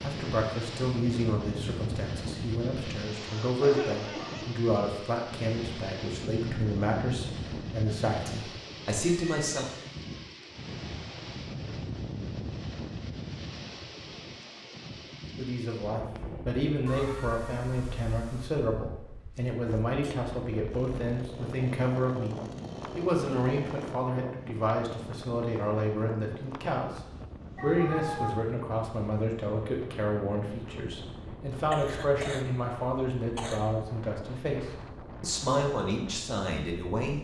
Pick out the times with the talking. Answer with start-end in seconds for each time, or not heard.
0.0-9.7, 15.3-27.0, 27.6-37.1.